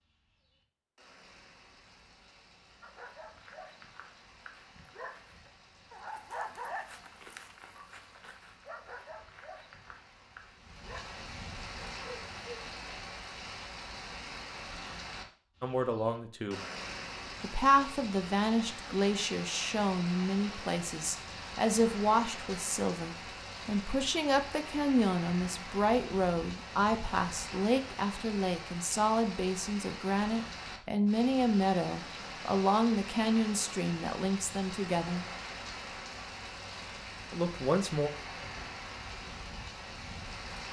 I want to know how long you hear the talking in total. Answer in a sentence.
The talking can be heard for 20 seconds in total.